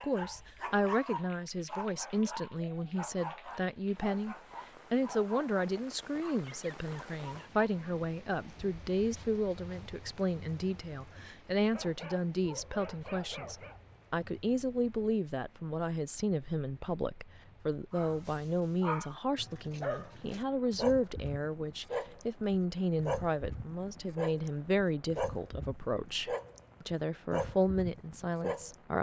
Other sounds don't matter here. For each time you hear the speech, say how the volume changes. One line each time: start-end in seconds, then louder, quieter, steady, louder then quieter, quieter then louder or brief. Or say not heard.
0.0-28.9 steady.